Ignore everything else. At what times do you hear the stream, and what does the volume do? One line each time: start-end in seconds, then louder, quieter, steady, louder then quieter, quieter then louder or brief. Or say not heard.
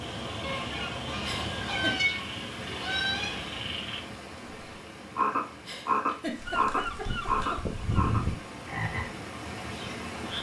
0.0-10.3 quieter then louder.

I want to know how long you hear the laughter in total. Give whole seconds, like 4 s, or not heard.
3 s.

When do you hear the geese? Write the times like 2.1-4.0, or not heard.
0.4-3.4, 6.3-8.3.